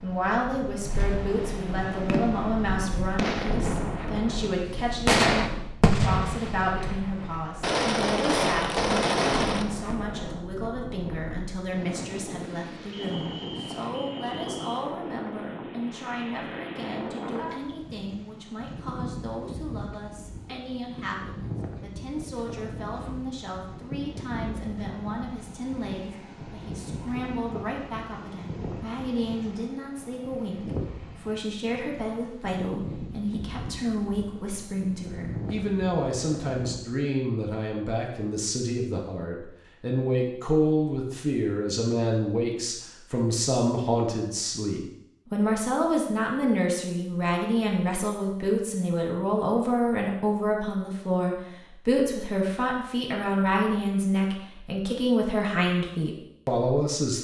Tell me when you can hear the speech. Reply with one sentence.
You can hear the speech from 0.0 to 57.1 s.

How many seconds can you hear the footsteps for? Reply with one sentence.
You can't hear the footsteps here.